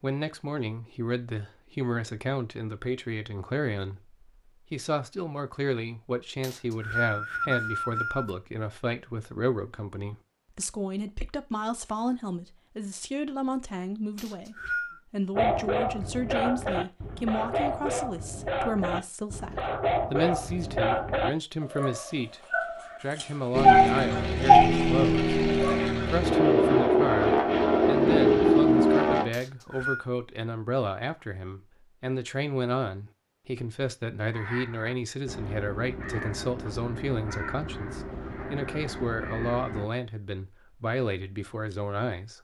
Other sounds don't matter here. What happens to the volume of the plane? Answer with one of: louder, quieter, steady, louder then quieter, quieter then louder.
louder.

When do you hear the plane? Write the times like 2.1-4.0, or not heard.
23.5-29.2.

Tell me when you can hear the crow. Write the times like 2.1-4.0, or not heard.
34.3-39.9.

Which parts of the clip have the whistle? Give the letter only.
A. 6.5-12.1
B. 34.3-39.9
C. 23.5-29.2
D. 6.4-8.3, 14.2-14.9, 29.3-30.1
D.